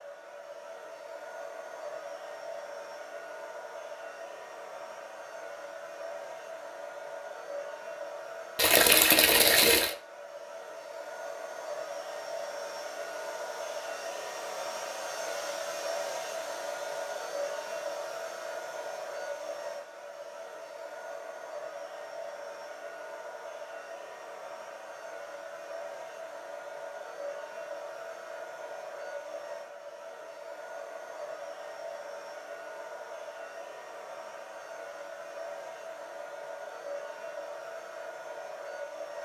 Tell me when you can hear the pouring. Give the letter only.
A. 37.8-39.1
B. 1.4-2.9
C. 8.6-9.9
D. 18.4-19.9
C.